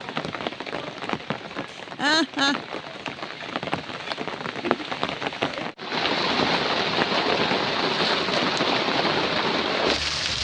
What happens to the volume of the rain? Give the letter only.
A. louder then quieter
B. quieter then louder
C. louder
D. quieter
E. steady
C.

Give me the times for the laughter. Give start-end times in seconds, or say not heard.
1.7-2.6.